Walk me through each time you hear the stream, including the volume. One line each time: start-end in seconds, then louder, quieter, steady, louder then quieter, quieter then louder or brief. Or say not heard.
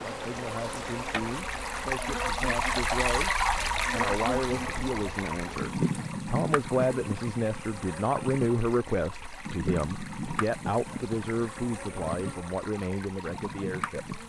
0.0-14.2 quieter.